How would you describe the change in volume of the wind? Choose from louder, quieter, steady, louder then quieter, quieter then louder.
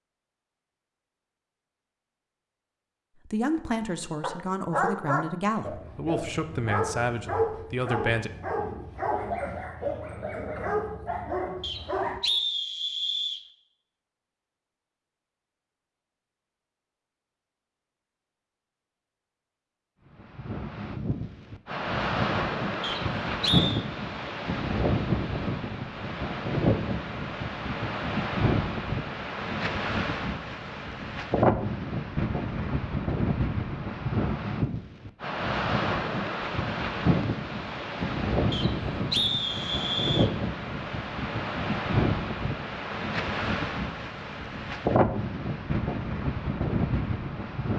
steady.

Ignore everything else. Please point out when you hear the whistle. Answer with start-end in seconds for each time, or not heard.
11.6-13.4, 22.8-23.8, 38.5-40.3.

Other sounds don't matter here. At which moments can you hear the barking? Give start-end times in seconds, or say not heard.
4.2-12.2.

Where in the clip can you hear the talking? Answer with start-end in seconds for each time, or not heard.
3.2-8.3.